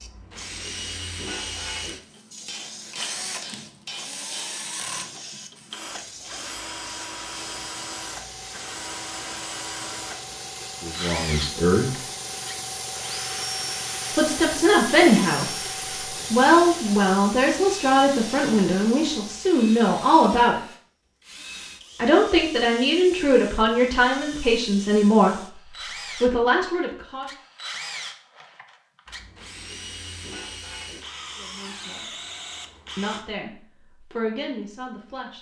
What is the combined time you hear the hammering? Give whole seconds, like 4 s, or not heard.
2 s.